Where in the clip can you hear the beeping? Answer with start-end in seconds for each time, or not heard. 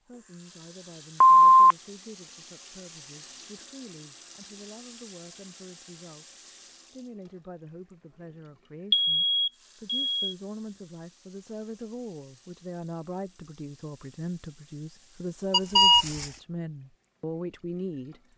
1.2-1.8, 8.9-10.2, 15.5-16.3.